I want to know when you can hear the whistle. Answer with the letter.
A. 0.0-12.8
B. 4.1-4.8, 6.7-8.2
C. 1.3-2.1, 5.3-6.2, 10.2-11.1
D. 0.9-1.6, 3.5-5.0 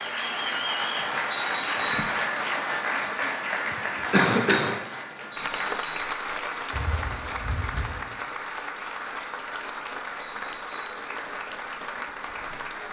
C.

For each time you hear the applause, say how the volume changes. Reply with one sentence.
You can hear the applause from 0.0 to 12.8 s, getting quieter.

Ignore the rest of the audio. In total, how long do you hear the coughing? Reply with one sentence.
You can hear the coughing for 2 seconds altogether.